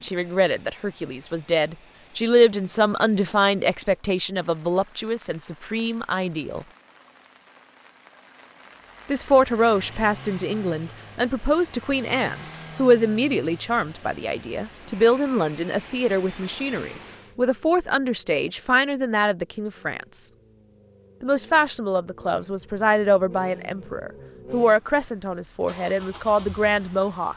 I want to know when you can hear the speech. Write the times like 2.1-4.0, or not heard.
0.0-6.7, 9.1-20.3, 21.2-27.3.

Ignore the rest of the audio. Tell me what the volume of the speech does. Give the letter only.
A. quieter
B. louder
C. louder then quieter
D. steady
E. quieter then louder
D.